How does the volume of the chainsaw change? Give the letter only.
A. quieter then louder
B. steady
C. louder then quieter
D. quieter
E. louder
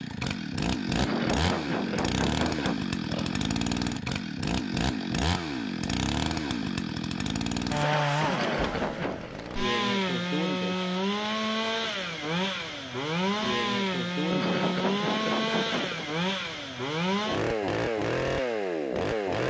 B.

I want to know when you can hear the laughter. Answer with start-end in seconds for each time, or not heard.
0.9-3.4, 8.2-9.3, 14.3-16.1.